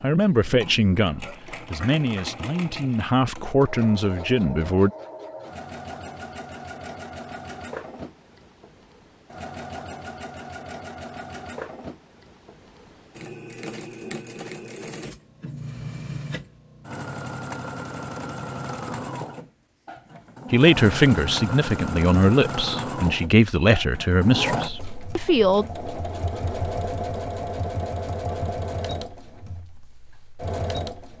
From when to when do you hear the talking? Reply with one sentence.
You can hear the talking from 0.0 to 4.9 s and from 20.5 to 25.6 s.